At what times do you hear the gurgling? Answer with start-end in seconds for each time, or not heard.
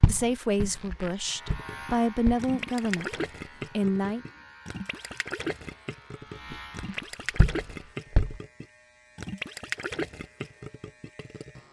1.3-11.6.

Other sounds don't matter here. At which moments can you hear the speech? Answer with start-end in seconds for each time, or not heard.
0.1-4.2.